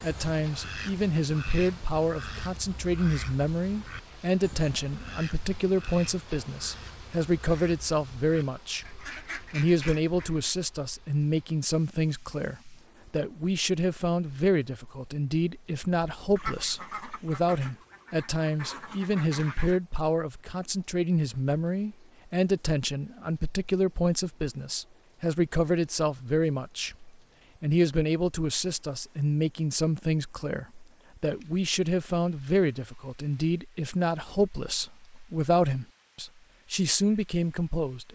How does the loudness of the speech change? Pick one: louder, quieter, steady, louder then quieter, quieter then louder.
steady.